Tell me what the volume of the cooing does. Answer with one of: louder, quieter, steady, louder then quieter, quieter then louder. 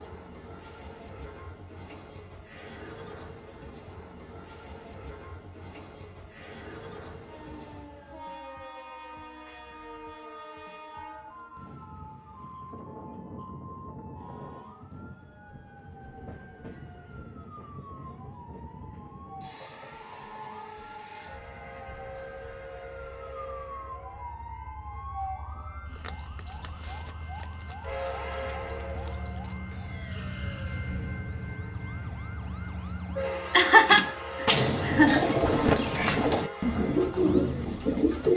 steady.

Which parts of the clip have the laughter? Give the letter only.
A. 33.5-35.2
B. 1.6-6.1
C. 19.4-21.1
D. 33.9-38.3
A.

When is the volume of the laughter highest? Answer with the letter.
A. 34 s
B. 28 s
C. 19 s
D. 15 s
A.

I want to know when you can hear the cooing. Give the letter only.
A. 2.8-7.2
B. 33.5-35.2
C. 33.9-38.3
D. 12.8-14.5
C.